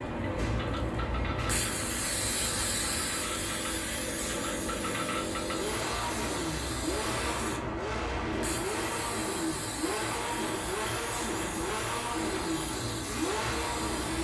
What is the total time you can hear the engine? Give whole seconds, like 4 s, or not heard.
14 s.